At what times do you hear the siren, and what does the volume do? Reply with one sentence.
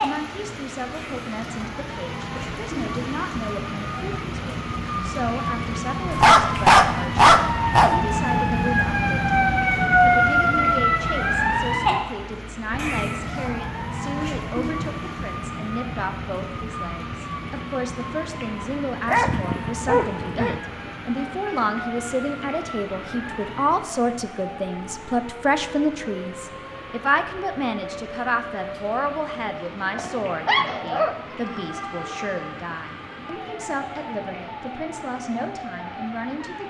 You can hear the siren from 0.0 to 36.6 s, getting louder then quieter.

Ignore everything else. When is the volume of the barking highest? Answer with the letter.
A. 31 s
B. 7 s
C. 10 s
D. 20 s
B.